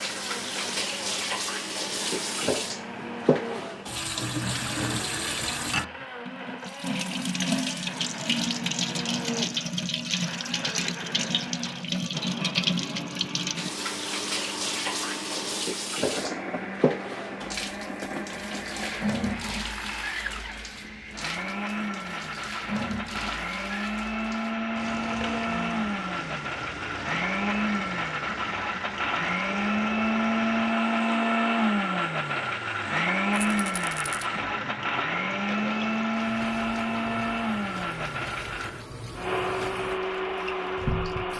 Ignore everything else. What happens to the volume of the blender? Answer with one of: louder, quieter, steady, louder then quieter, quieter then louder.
louder.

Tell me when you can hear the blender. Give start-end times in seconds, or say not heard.
0.0-41.3.